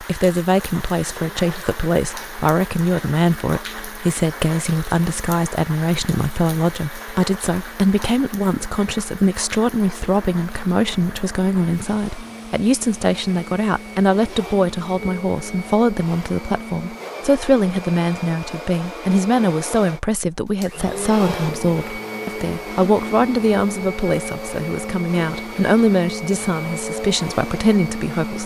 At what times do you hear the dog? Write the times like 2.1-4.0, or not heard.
not heard.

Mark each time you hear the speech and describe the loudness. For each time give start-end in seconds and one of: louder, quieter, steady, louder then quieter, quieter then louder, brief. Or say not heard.
0.0-28.4 steady.